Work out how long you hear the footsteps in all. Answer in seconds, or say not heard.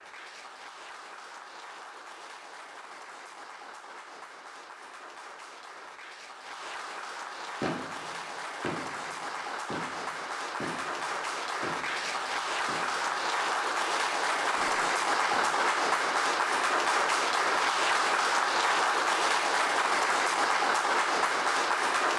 not heard.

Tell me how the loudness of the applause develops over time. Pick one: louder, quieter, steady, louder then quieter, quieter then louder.
louder.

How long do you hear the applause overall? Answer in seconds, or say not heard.
22 s.